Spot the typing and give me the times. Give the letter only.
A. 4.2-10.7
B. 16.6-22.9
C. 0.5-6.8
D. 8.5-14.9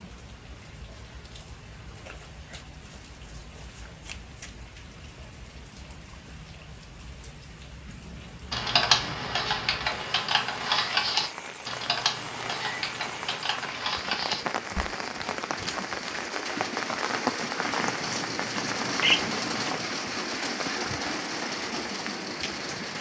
D.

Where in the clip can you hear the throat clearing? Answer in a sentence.
You can't hear the throat clearing here.